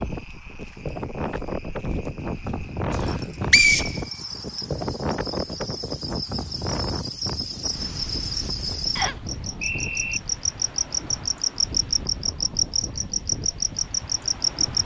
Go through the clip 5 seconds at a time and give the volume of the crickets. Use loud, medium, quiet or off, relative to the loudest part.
quiet, medium, loud.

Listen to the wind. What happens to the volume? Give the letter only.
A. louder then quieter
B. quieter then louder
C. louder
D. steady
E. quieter
E.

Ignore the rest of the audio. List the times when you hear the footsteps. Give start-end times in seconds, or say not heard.
not heard.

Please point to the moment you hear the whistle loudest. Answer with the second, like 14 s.
4 s.